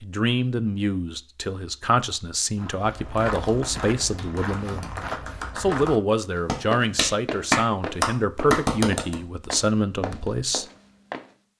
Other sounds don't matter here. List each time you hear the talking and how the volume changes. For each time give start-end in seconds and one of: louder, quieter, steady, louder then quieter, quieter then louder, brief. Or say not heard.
0.0-10.7 steady.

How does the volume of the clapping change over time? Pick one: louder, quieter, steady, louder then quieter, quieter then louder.
louder.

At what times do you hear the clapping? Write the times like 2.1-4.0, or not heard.
3.0-9.2.